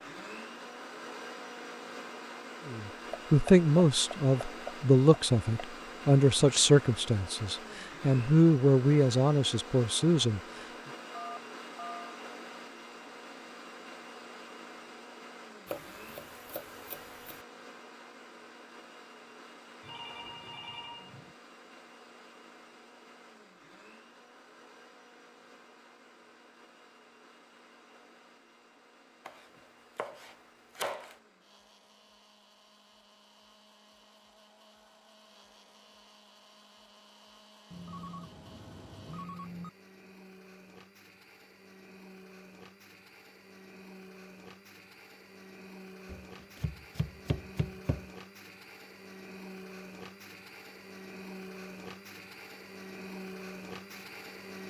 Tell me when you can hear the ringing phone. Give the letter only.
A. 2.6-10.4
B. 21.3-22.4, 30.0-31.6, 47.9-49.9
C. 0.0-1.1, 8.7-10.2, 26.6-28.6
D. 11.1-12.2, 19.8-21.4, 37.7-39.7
D.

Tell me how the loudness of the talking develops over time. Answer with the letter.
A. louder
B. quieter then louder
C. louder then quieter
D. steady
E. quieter
D.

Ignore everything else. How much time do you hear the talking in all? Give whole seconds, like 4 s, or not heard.
8 s.